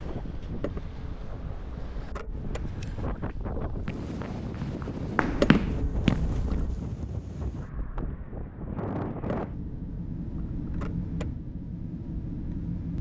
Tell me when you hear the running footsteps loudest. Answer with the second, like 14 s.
6 s.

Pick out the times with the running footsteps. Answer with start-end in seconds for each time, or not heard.
3.9-6.6.